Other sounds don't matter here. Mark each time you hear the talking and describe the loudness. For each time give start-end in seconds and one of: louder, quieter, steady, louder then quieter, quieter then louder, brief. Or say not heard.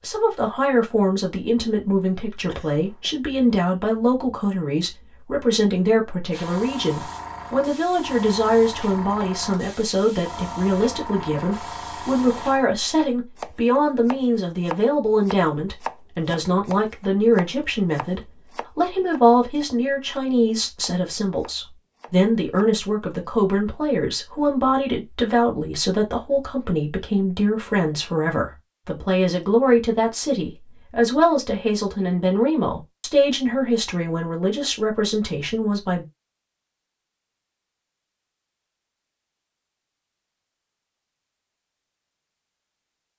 0.0-36.0 steady.